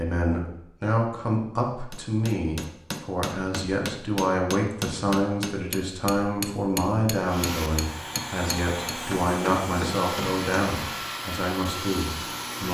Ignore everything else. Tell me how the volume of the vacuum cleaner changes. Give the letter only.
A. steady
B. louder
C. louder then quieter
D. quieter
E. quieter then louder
A.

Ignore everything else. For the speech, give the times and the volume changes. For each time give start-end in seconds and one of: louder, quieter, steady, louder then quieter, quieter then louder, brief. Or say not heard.
0.0-12.7 steady.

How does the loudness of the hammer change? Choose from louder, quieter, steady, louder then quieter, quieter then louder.
steady.